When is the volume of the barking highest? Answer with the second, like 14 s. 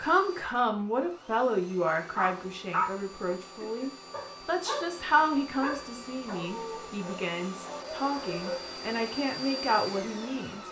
3 s.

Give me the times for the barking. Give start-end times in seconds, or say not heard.
2.1-8.6.